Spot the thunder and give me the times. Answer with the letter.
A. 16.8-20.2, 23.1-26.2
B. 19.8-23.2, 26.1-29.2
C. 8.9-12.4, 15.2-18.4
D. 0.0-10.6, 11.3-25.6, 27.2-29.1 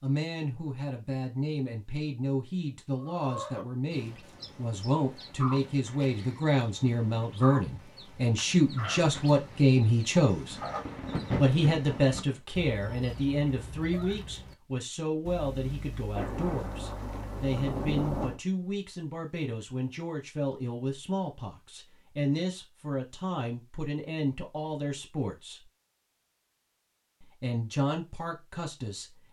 C.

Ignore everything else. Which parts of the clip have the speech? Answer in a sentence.
You can hear the speech from 0.0 to 10.6 s, from 11.3 to 25.6 s and from 27.2 to 29.1 s.